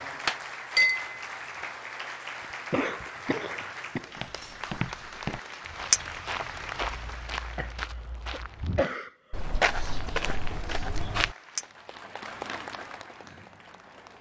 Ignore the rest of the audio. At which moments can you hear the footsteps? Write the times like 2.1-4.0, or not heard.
4.2-11.3.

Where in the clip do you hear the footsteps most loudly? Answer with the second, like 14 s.
10 s.